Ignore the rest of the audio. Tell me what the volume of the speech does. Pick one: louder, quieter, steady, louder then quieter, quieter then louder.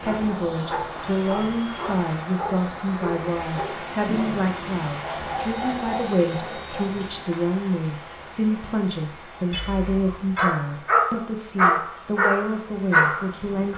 steady.